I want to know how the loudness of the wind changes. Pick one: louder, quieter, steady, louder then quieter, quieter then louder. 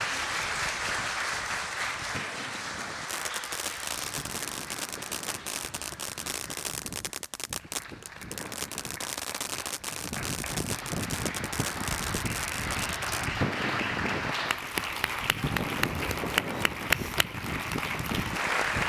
louder.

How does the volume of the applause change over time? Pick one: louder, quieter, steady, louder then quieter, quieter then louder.
quieter then louder.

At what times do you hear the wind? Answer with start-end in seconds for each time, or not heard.
0.0-18.8.